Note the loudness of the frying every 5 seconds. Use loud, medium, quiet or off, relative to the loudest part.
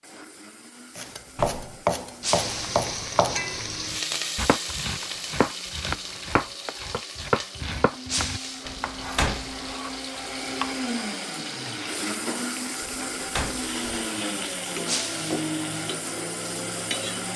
loud, medium, medium, medium.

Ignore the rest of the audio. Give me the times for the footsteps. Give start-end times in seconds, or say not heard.
not heard.